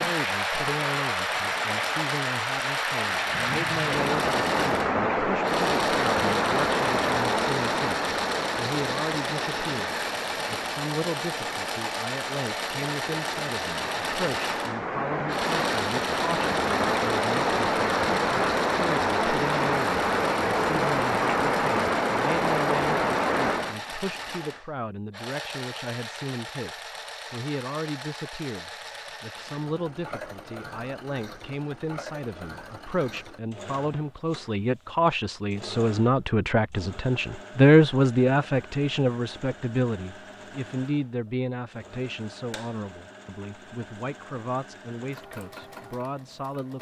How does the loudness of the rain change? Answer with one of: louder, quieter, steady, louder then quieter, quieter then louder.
quieter then louder.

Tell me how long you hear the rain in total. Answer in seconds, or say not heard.
24 s.